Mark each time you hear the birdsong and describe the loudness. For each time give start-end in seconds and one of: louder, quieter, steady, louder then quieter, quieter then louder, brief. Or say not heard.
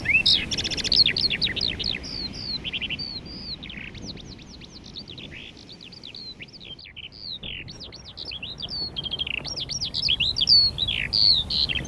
0.0-11.8 quieter then louder.